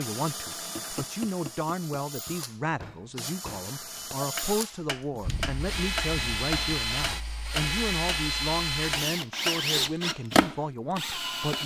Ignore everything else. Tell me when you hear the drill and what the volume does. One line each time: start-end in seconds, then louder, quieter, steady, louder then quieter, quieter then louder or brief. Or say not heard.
0.0-11.6 louder.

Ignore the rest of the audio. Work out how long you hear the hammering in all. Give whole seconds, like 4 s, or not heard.
8 s.